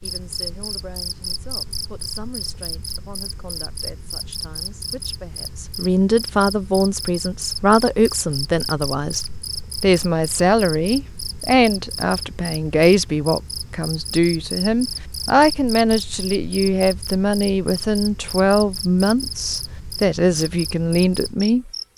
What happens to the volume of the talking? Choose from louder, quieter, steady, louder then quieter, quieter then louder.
louder.